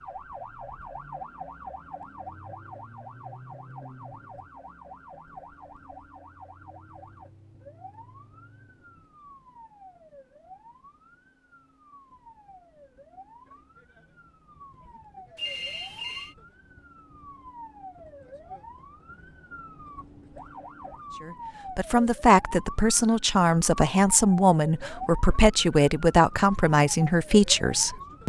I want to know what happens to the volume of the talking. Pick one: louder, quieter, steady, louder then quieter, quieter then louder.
steady.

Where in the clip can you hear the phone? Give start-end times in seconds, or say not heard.
15.3-16.4.